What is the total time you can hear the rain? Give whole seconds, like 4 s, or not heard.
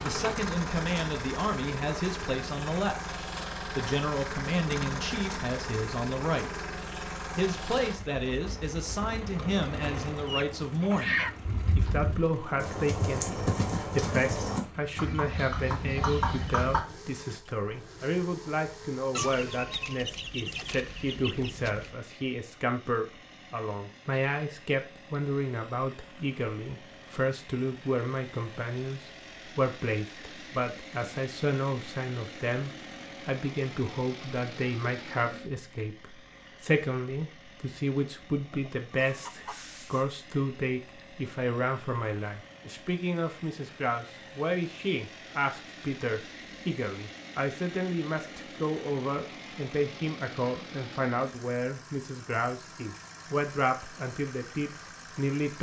not heard.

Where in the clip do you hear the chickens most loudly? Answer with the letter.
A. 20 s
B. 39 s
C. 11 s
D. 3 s
C.